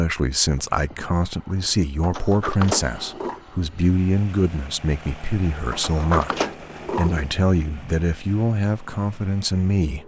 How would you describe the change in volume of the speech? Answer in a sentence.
The loudness of the speech stays about the same.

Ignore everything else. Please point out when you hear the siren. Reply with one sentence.
You can't hear the siren here.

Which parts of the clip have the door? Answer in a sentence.
The door can be heard from 2.0 to 3.4 s and from 5.7 to 7.3 s.